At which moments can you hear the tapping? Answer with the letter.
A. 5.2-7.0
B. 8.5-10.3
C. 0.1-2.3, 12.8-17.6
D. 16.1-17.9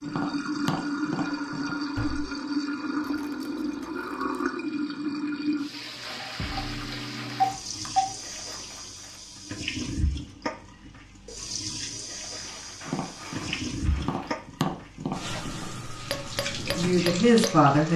C.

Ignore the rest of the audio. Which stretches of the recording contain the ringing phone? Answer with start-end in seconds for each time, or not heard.
7.3-8.1.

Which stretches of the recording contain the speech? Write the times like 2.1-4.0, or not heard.
16.1-17.9.